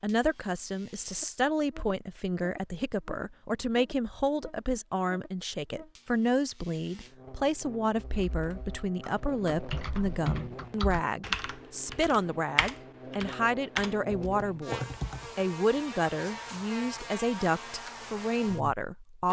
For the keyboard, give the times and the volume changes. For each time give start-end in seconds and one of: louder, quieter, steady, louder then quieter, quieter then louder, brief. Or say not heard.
8.2-15.4 louder.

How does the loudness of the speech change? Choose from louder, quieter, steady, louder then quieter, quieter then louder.
steady.